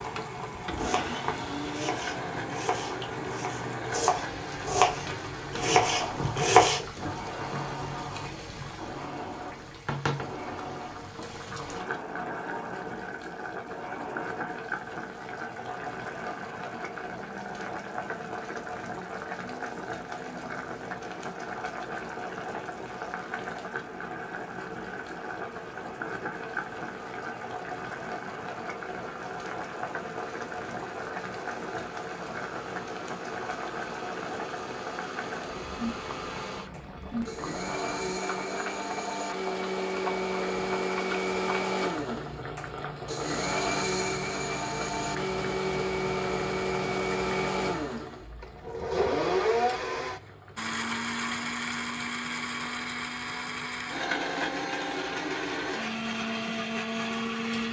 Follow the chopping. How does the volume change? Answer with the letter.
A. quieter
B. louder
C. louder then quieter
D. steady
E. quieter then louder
B.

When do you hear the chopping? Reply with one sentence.
The chopping can be heard from 0.8 to 6.8 s.